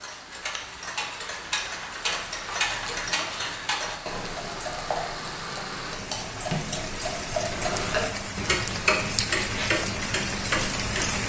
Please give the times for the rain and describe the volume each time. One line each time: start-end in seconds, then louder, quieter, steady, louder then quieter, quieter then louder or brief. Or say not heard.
0.0-11.2 louder.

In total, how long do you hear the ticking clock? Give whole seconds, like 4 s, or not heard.
11 s.